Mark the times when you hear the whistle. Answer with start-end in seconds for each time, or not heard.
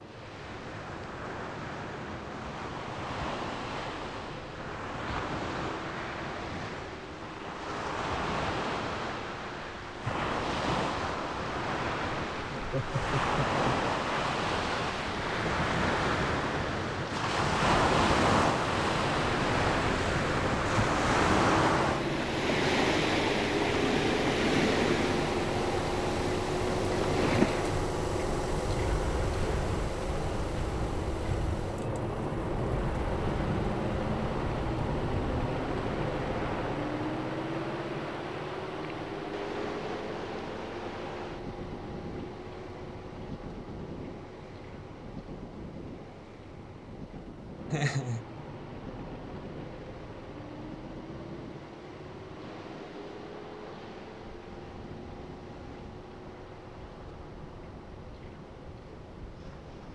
not heard.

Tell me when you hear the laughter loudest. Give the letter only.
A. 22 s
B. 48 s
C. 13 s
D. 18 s
B.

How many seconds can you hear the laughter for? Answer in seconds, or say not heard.
2 s.